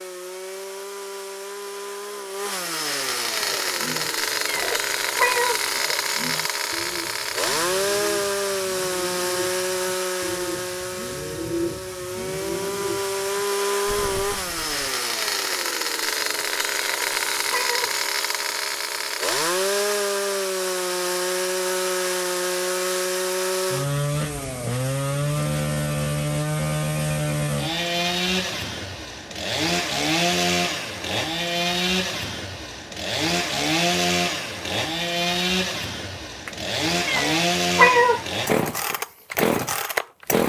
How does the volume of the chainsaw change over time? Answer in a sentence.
The volume of the chainsaw stays about the same.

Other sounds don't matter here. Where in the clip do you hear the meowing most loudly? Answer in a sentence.
The loudest moment of the meowing is at 38 seconds.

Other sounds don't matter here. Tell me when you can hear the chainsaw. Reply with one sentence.
The chainsaw can be heard from 0.0 to 40.4 s.